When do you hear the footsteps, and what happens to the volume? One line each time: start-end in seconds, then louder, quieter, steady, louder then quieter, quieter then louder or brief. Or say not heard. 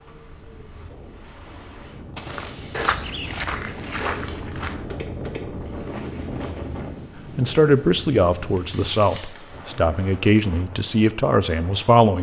2.1-6.5 quieter.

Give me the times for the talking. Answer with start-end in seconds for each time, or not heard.
7.3-12.1.